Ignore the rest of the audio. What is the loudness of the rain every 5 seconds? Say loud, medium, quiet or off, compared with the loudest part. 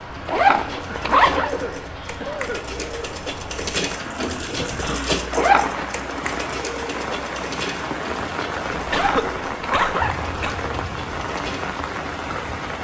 medium, loud, loud.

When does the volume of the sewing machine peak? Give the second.
5 s.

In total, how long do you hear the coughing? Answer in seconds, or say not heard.
4 s.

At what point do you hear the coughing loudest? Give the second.
9 s.